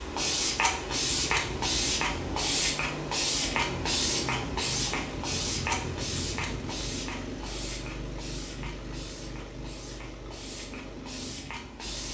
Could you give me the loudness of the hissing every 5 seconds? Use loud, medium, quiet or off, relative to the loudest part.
loud, medium, quiet.